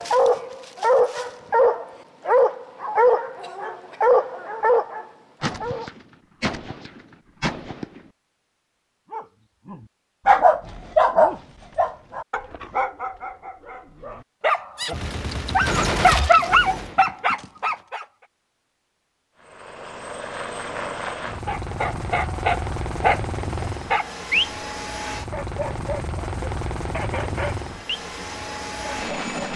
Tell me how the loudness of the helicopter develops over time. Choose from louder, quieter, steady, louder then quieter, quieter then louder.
steady.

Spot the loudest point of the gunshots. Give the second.
16 s.